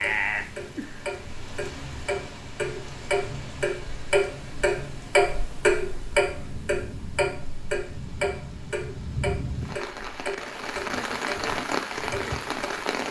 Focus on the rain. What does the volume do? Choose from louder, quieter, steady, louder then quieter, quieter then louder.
louder.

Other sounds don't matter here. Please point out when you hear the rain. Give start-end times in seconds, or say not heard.
0.0-13.0.